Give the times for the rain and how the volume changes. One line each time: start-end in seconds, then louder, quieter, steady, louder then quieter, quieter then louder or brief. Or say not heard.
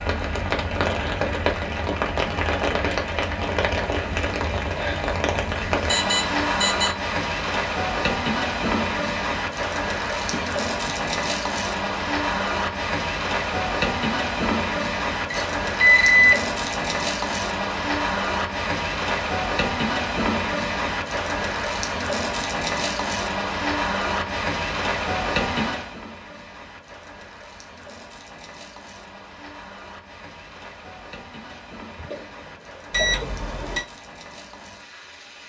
0.0-35.4 quieter.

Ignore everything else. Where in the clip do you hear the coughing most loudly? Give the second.
33 s.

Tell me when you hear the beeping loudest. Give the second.
16 s.